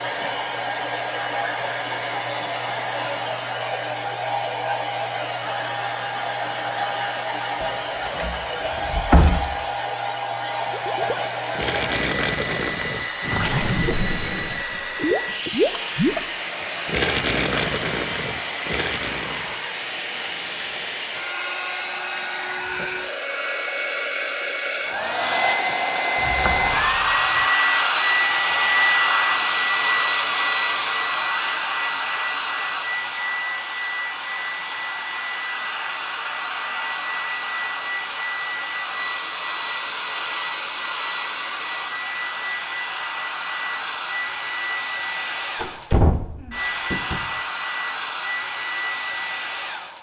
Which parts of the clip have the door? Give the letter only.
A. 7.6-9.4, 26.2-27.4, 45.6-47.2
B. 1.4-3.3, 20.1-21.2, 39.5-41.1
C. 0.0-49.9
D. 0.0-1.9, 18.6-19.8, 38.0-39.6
A.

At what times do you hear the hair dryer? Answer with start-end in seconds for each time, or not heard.
0.0-49.9.